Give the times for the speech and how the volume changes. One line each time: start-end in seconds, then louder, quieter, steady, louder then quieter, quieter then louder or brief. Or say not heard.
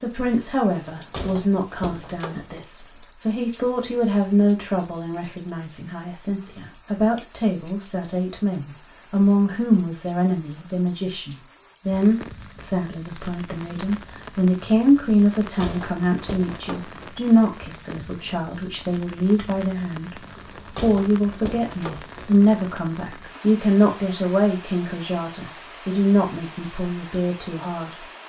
0.0-28.1 steady.